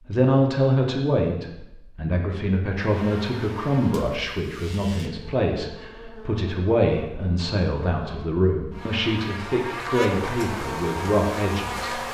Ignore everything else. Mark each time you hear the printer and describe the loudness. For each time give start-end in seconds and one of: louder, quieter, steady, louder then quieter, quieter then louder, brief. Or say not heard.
not heard.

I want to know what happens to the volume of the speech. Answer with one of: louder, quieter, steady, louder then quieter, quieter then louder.
steady.